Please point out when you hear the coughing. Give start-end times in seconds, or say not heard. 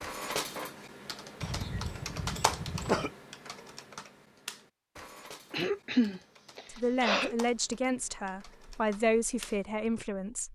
1.4-3.1, 5.5-7.3.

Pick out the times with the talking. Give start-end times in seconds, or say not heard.
6.7-10.5.